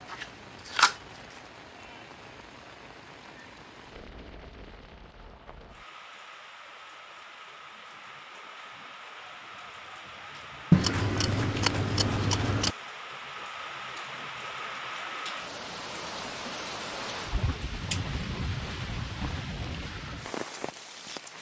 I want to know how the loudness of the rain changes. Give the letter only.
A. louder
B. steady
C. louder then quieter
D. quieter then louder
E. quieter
A.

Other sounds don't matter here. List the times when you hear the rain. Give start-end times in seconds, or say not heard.
0.0-21.3.